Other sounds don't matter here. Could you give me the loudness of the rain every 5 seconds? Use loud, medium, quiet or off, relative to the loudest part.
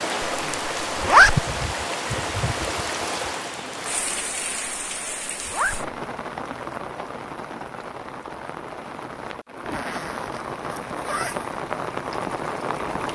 loud, medium, loud.